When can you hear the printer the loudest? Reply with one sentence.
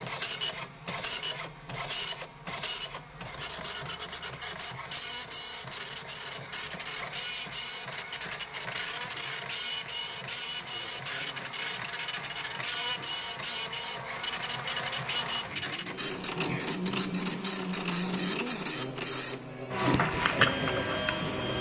The volume of the printer peaks at 20 seconds.